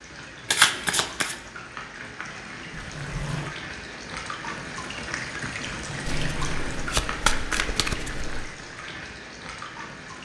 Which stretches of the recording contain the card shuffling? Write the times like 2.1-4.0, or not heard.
0.5-1.4, 6.0-8.5.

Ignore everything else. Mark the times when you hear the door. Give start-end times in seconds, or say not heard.
2.8-3.5, 5.8-7.0.